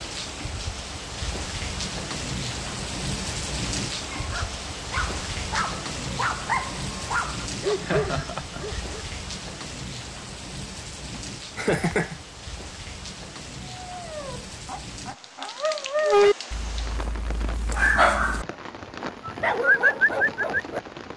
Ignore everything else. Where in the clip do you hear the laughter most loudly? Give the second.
12 s.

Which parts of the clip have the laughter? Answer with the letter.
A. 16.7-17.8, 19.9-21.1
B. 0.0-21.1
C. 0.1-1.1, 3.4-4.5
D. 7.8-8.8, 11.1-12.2
D.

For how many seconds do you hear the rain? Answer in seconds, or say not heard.
21 s.